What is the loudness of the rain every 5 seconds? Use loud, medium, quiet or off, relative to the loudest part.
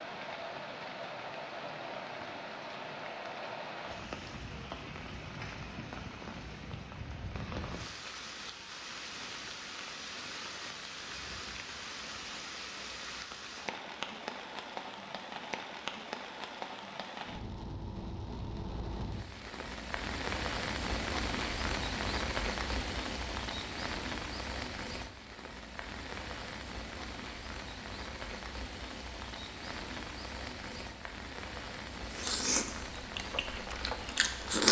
medium, medium, medium, medium, loud, medium, medium.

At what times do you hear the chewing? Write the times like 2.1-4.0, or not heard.
32.0-34.6.